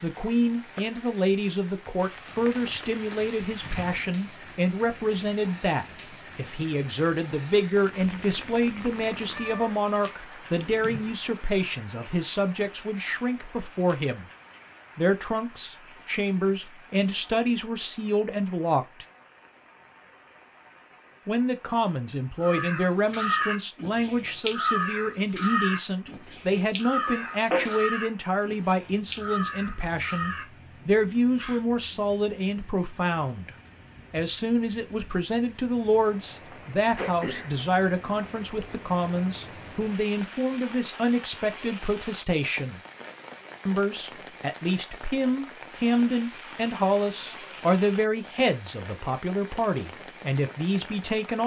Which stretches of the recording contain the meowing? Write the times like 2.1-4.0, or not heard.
7.9-9.8, 27.1-27.9.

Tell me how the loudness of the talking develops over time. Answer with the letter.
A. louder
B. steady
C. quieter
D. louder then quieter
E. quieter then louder
B.